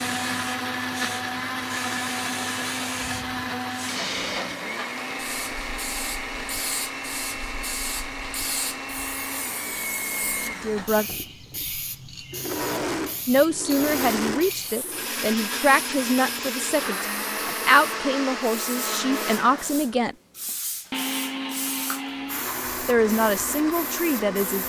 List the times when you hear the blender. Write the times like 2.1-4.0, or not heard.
0.0-24.6.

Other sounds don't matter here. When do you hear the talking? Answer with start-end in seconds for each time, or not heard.
10.4-11.1, 13.2-20.1, 22.9-24.6.